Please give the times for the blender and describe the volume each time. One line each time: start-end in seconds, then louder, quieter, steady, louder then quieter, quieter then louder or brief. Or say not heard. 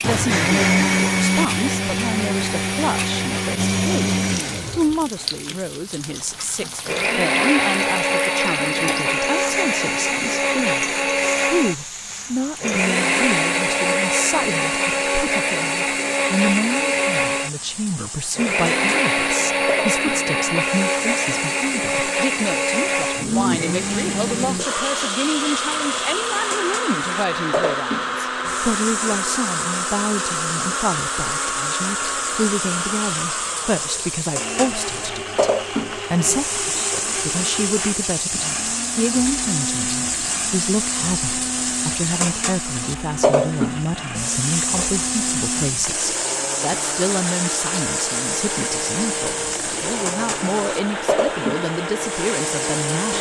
0.0-53.1 quieter.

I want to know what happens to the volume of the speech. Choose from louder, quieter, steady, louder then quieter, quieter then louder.
steady.